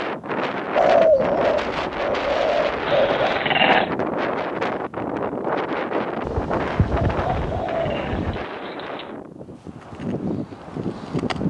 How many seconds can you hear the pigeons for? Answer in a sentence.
The pigeons can be heard for 5 seconds in total.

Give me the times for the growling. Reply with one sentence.
The growling can be heard from 2.9 to 3.9 s and from 7.4 to 9.2 s.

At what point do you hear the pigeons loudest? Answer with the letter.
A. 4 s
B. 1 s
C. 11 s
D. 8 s
B.